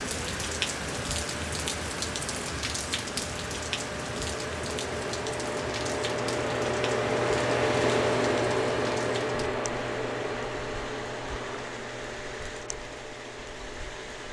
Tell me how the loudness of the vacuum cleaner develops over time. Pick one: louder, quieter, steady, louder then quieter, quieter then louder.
louder then quieter.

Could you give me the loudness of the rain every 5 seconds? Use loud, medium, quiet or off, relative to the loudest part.
loud, medium, medium.